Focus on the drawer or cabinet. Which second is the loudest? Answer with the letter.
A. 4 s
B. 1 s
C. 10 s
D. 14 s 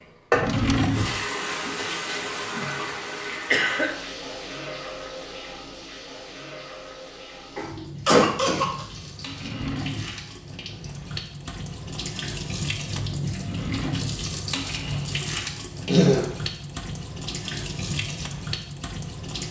B.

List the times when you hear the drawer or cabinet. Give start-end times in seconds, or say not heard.
0.3-1.2, 9.3-10.2, 13.3-14.2.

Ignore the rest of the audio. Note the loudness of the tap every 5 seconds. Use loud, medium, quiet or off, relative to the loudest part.
loud, medium, loud, loud.